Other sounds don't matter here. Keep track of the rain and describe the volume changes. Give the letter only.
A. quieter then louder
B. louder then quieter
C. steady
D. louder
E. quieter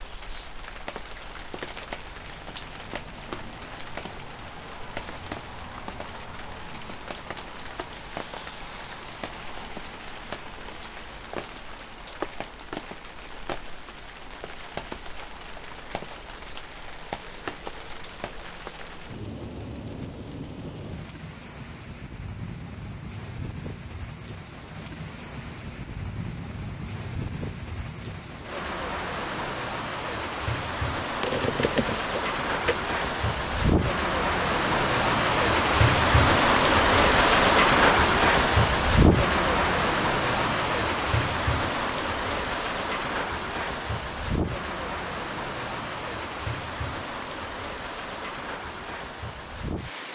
B.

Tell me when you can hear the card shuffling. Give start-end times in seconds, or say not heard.
31.2-32.8.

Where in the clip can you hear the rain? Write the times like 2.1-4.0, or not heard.
0.0-50.1.